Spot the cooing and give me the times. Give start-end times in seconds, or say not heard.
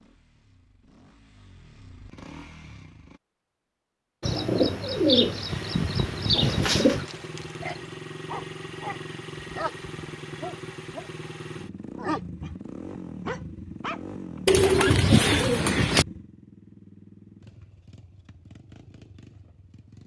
4.2-7.0, 14.4-16.1.